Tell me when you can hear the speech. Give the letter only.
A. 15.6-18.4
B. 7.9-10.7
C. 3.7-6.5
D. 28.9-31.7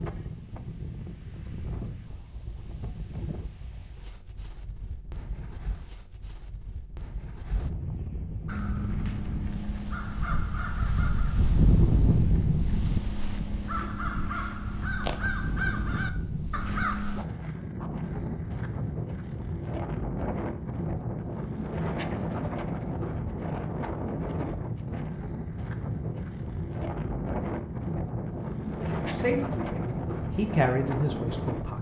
D.